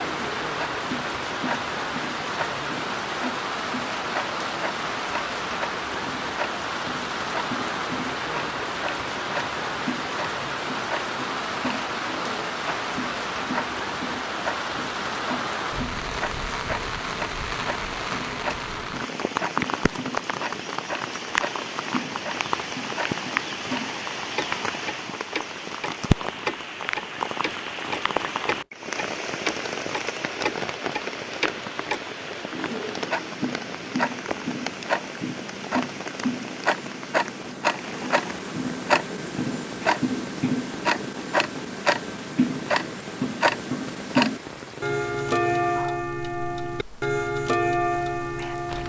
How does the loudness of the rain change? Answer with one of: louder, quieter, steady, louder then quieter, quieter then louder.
quieter.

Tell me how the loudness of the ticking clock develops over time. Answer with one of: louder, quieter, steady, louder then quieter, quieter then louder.
louder.